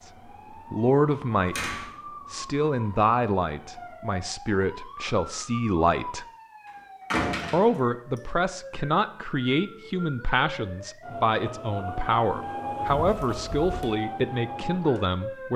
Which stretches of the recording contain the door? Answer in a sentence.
The door can be heard from 1.4 to 1.9 s, from 7.1 to 7.8 s and from 12.8 to 13.9 s.